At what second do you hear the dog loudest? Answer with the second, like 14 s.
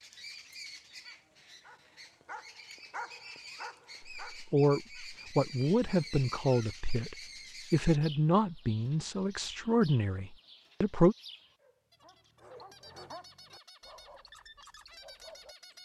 3 s.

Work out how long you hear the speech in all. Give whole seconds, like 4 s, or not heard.
7 s.